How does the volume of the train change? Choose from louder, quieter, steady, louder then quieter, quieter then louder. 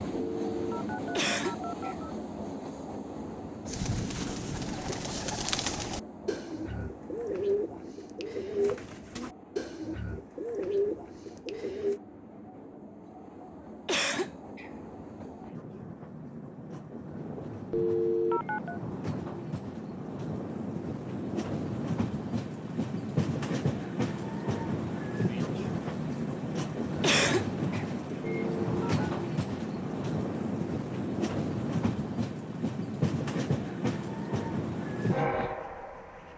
quieter then louder.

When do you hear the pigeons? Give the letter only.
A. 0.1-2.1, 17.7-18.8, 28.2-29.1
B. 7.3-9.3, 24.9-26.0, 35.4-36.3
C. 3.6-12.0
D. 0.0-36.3
C.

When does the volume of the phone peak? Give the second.
18 s.